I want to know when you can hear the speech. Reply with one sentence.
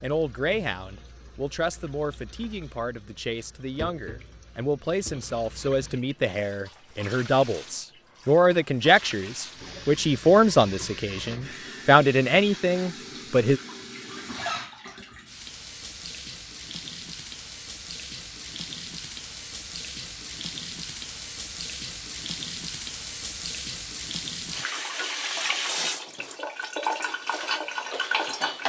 The speech can be heard from 0.0 to 13.6 s.